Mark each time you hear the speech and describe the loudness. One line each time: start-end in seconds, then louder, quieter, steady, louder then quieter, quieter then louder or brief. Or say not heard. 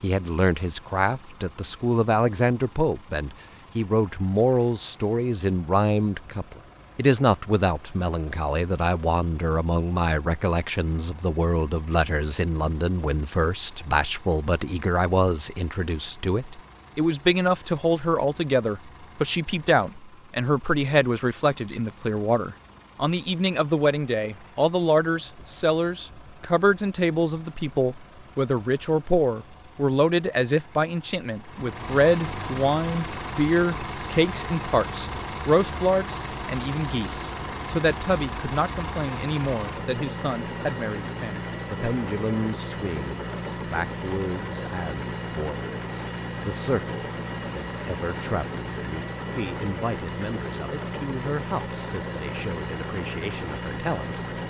0.0-54.2 quieter.